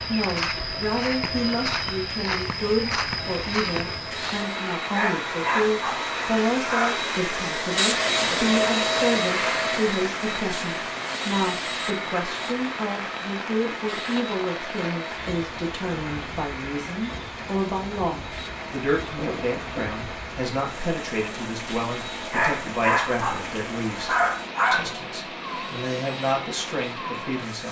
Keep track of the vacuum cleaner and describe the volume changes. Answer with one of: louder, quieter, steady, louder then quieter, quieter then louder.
louder then quieter.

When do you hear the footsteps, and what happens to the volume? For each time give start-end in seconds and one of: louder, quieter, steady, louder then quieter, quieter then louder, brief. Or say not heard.
0.0-4.5 steady.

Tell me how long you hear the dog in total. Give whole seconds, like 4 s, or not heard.
5 s.